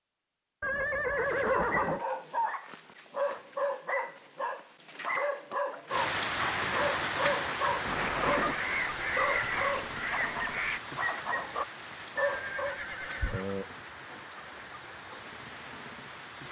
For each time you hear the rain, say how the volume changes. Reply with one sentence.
The rain can be heard from 5.8 to 16.4 s, getting quieter.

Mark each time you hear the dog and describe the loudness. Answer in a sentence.
You can hear the dog from 1.1 to 12.8 s, at a steady volume.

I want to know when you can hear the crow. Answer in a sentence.
You can hear the crow from 8.3 to 10.8 s.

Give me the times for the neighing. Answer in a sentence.
You can hear the neighing from 0.6 to 2.0 s, from 7.8 to 8.6 s and from 12.2 to 13.7 s.